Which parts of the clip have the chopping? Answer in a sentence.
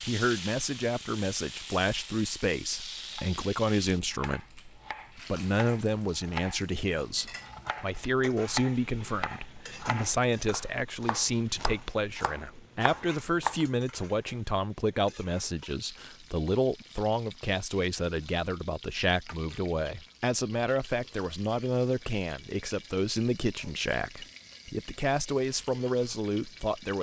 The chopping can be heard from 3.1 to 13.7 s.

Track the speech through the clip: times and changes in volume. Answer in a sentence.
The speech can be heard from 0.0 to 26.9 s, at a steady volume.